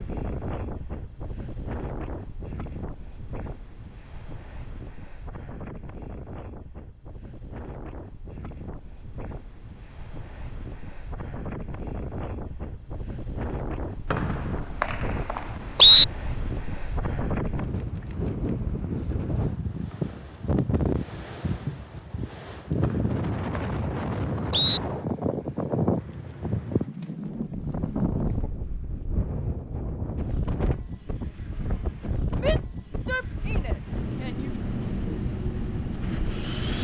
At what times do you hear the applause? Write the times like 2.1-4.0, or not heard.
not heard.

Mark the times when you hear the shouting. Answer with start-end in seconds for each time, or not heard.
32.4-34.5.